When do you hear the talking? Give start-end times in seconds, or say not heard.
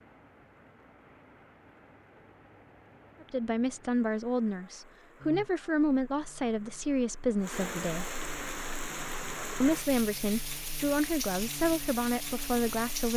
3.2-8.2, 9.6-13.1.